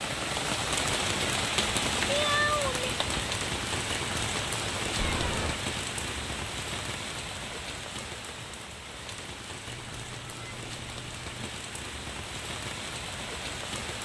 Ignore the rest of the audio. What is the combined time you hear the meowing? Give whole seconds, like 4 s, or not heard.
3 s.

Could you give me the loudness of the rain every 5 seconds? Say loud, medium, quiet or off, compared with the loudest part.
loud, medium, medium.